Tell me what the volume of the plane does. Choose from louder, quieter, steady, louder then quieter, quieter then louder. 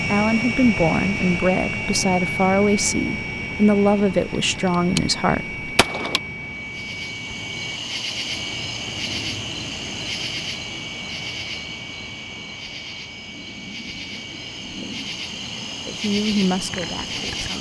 quieter.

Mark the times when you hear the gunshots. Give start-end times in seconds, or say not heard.
4.5-5.0, 5.8-6.2.